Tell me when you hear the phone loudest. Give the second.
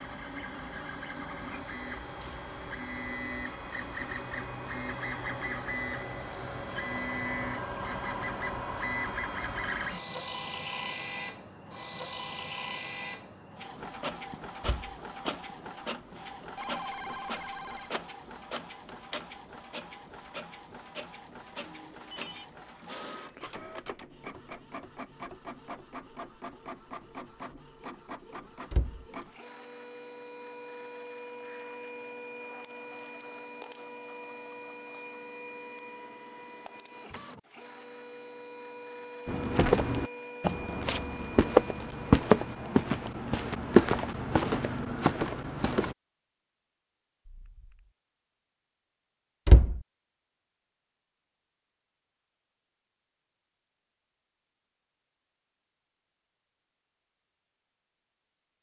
17 s.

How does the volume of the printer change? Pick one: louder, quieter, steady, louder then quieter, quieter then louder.
quieter.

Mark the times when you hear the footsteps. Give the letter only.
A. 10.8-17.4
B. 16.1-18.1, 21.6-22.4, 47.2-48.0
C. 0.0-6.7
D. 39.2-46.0
D.